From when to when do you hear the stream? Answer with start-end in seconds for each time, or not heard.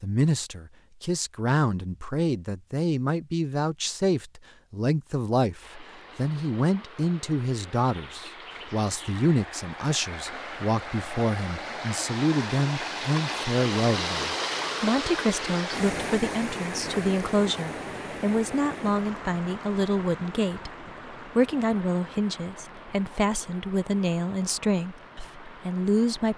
5.6-26.3.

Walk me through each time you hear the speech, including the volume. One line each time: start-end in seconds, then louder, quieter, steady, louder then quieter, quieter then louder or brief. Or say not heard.
0.0-20.7 steady
21.4-26.3 steady.